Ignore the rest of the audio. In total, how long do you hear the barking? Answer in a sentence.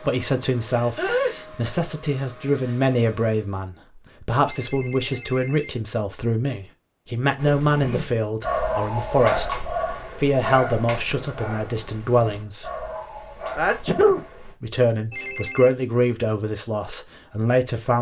You can hear the barking for 7 seconds altogether.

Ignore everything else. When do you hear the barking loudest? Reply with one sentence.
The loudest moment of the barking is at 9 seconds.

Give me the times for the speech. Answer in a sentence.
The speech can be heard from 0.0 to 12.7 s and from 14.6 to 17.9 s.